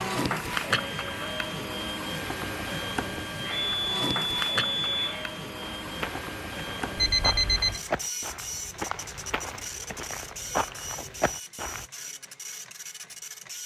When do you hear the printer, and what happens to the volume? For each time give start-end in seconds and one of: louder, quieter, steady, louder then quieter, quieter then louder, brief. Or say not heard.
0.0-13.6 quieter.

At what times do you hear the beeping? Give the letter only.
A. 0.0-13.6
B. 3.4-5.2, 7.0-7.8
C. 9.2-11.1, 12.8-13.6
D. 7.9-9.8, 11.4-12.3
B.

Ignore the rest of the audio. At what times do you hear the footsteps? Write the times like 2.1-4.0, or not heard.
5.6-11.8.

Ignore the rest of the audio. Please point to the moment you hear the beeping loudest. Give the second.
7 s.